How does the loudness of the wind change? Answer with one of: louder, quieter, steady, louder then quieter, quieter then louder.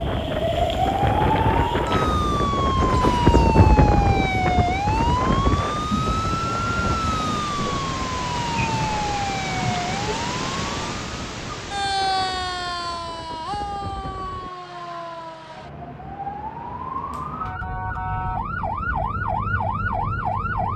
quieter.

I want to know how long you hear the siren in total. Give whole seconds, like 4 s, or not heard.
21 s.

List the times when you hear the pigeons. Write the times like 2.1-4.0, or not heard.
not heard.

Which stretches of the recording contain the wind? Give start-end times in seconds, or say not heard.
0.0-14.5.